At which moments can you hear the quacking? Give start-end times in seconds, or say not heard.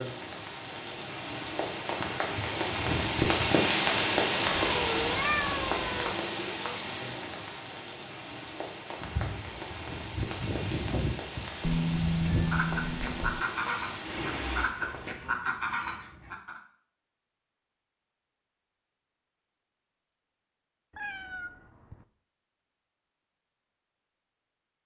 9.0-16.6.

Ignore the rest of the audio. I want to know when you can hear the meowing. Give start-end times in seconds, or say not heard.
4.5-6.2, 11.6-13.4, 20.9-22.1.